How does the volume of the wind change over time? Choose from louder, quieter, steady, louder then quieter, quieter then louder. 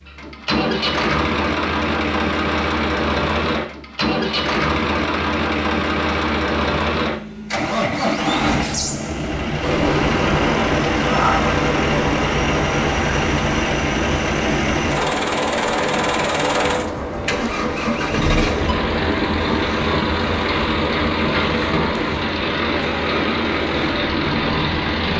quieter.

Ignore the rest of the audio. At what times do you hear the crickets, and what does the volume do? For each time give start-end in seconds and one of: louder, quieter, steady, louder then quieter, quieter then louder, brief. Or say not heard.
not heard.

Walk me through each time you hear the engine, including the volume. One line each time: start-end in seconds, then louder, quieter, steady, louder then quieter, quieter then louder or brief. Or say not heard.
0.0-25.1 steady.